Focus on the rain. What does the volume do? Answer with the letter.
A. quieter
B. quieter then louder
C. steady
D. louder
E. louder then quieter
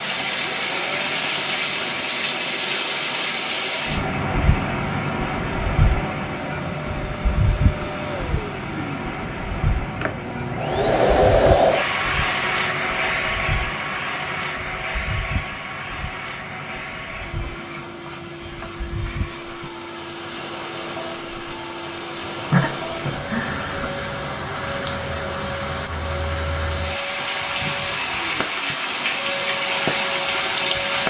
B.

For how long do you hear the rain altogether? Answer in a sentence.
You can hear the rain for 31 seconds altogether.